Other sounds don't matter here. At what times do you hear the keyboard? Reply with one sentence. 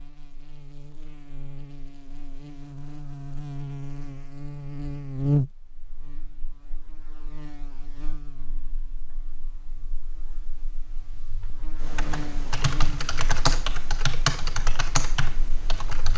You can hear the keyboard from 11.8 to 16.1 s.